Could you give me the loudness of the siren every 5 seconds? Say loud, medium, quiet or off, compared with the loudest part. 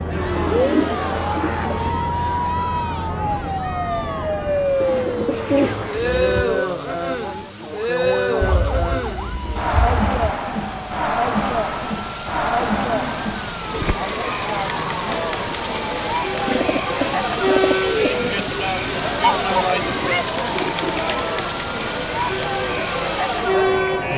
loud, medium, medium, medium, medium.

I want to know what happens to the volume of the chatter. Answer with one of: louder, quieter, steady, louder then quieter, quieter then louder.
louder.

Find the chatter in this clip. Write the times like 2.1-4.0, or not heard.
0.1-24.1.